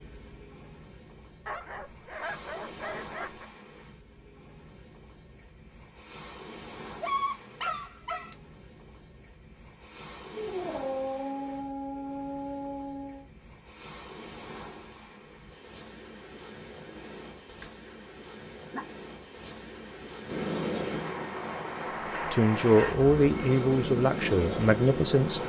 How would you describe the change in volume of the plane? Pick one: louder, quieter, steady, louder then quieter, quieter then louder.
quieter then louder.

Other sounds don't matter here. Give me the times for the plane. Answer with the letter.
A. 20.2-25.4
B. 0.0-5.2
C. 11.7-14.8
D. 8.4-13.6
A.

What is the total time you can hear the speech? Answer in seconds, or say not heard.
3 s.